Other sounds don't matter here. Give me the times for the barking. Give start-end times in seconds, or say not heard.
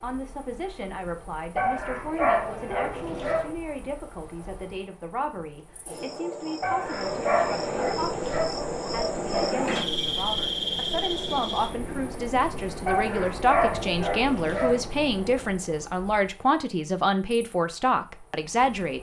1.6-3.5, 6.6-8.6, 12.8-14.8.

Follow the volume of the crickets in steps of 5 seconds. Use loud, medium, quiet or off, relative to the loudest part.
quiet, loud, loud, quiet.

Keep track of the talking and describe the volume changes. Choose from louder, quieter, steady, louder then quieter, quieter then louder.
louder.